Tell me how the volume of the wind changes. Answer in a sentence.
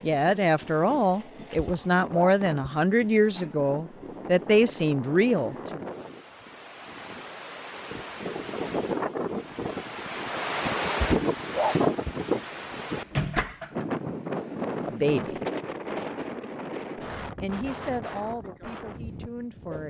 The volume of the wind goes up, then down.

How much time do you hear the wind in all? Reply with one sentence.
You can hear the wind for 20 seconds altogether.